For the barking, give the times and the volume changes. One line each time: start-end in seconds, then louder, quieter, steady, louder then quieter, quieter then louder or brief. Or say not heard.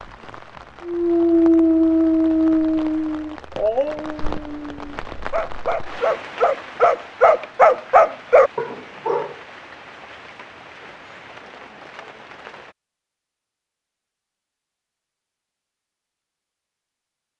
0.8-9.3 quieter then louder.